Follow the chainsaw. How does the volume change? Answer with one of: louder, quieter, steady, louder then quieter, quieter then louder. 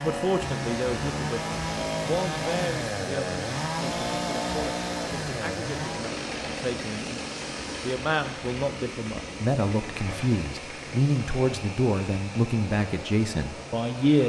quieter.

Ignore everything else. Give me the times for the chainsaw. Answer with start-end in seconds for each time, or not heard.
0.0-14.2.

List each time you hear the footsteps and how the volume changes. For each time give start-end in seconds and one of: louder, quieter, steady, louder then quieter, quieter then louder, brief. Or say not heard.
not heard.